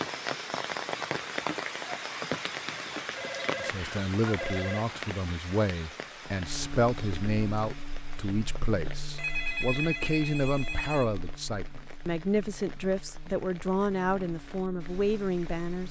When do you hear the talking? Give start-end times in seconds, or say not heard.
3.5-15.8.